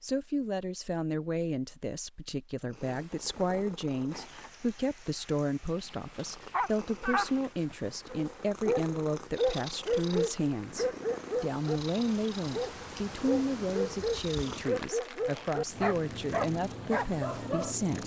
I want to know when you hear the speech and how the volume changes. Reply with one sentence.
The speech can be heard from 0.0 to 18.0 s, at a steady volume.